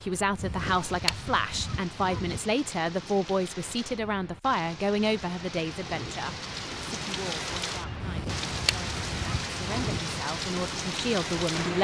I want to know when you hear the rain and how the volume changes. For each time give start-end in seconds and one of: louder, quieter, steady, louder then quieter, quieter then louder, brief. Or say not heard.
0.0-11.7 louder.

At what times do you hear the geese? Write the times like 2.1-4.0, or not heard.
0.3-2.4, 8.0-10.0.